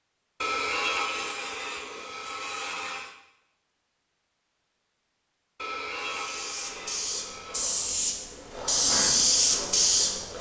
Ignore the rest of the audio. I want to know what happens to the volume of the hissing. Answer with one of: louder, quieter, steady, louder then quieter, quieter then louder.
louder.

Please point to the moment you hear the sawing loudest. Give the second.
1 s.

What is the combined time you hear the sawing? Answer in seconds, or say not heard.
5 s.